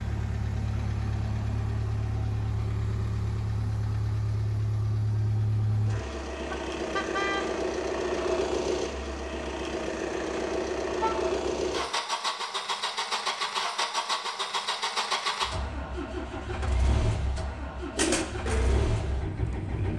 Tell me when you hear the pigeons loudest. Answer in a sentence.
The volume of the pigeons peaks at 18 seconds.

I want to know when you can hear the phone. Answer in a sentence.
You can't hear the phone here.